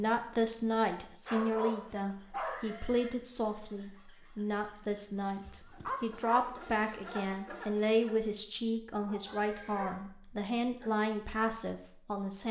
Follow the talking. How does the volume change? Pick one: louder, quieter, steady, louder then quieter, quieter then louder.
steady.